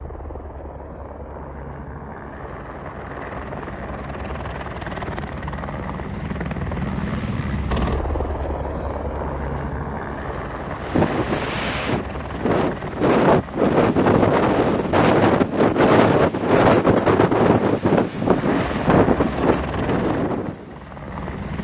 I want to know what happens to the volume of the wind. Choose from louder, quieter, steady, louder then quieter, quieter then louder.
louder then quieter.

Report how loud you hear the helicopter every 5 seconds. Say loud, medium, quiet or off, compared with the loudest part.
medium, loud, loud, loud, medium.